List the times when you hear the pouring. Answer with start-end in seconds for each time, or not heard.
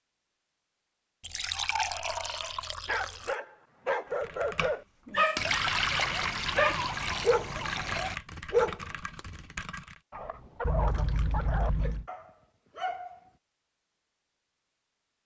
1.2-3.4, 5.3-8.2, 10.6-12.1.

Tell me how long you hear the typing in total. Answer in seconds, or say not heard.
6 s.